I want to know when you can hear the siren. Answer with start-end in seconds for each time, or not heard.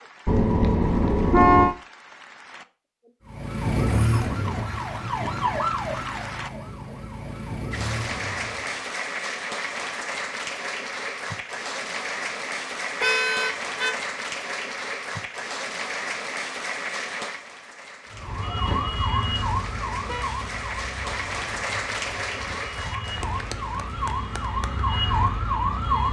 3.2-8.8, 18.1-26.0.